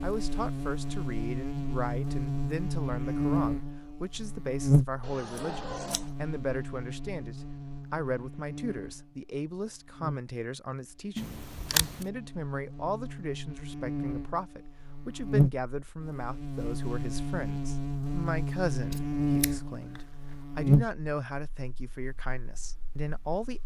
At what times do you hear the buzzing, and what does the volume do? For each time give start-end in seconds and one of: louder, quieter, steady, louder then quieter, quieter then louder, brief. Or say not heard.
0.0-23.6 quieter then louder.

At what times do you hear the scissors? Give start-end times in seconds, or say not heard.
5.0-6.1, 11.2-12.1, 18.9-20.0.